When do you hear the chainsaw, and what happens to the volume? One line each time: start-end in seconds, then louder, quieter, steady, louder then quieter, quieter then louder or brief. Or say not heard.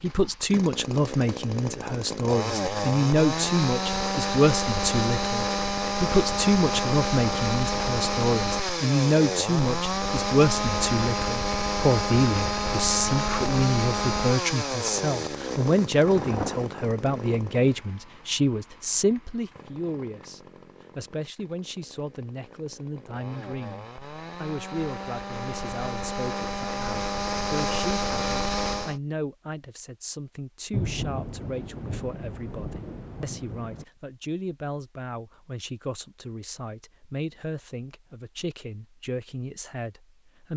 0.0-29.0 quieter then louder.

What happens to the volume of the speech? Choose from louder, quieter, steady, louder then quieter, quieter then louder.
quieter.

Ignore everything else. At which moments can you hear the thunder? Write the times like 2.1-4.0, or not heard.
16.1-16.6, 30.7-33.9.